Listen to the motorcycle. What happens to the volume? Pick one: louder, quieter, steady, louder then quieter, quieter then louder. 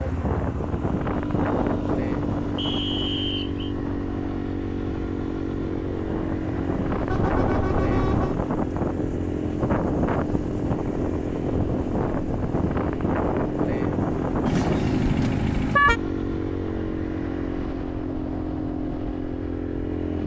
steady.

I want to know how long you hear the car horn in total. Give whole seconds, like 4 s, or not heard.
3 s.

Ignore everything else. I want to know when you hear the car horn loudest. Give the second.
16 s.